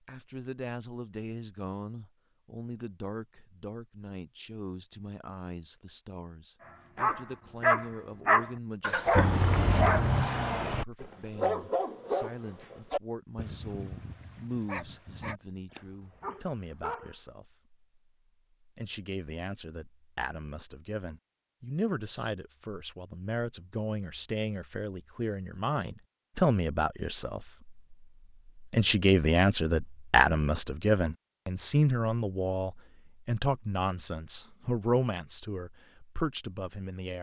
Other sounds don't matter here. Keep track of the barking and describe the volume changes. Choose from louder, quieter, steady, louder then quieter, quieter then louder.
quieter.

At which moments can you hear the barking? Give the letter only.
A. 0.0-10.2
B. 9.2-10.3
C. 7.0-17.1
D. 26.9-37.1
C.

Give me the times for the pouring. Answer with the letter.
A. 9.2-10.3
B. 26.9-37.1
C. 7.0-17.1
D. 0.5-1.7
A.